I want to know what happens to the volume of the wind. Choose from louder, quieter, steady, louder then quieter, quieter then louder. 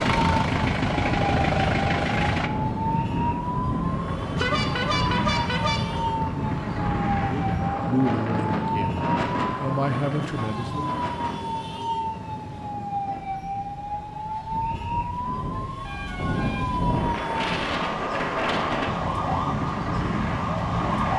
quieter then louder.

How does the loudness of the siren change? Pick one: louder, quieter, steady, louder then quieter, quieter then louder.
steady.